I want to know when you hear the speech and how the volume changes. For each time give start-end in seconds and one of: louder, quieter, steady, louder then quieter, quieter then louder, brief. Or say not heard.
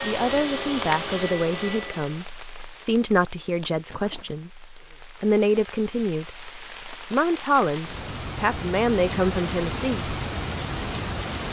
0.0-10.1 steady.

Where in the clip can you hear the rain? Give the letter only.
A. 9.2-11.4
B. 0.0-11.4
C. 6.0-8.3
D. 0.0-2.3
B.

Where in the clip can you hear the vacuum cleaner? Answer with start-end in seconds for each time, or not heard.
0.0-2.3.